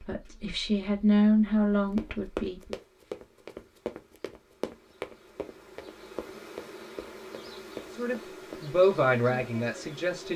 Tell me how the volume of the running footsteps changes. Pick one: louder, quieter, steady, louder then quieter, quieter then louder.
quieter.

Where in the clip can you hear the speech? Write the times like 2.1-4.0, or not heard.
0.0-2.8, 7.9-10.3.